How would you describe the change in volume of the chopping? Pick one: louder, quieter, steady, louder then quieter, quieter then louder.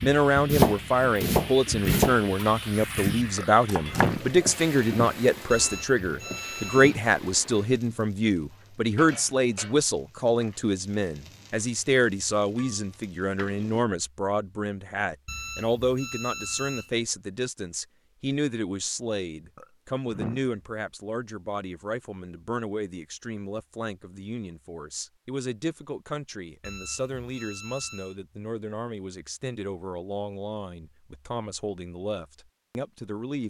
quieter.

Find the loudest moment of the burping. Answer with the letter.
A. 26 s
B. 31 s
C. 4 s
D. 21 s
C.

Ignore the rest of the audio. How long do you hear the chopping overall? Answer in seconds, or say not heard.
4 s.